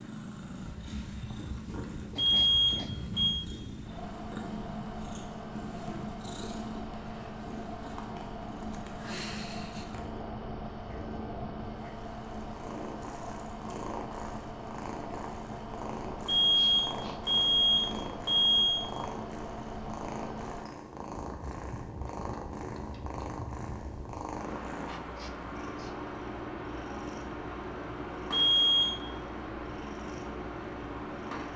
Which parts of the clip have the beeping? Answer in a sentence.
The beeping can be heard from 2.1 to 3.4 s, from 16.2 to 18.8 s and from 28.3 to 28.9 s.